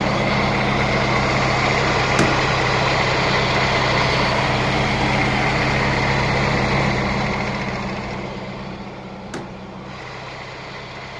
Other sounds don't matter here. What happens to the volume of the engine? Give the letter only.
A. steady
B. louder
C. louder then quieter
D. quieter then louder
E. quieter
E.